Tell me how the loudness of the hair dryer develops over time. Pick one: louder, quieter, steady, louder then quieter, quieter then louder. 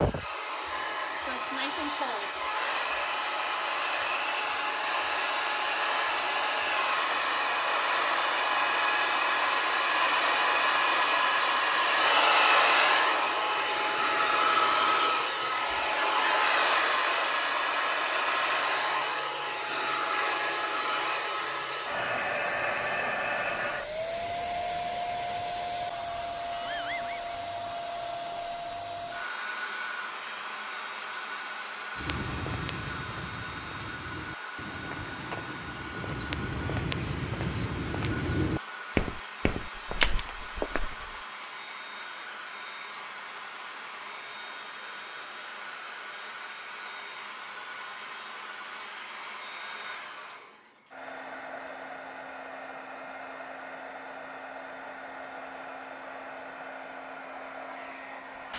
quieter.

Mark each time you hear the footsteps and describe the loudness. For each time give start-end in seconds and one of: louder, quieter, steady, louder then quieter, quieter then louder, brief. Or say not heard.
31.9-41.1 louder.